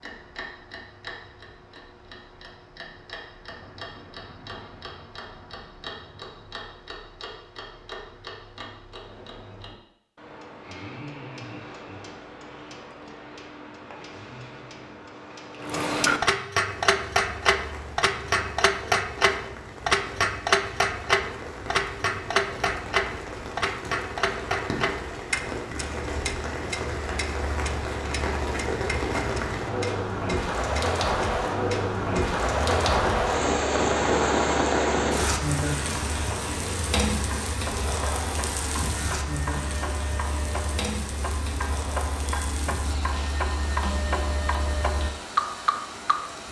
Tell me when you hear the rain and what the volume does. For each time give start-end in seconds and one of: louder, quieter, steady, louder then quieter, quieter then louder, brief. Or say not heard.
16.6-46.4 louder then quieter.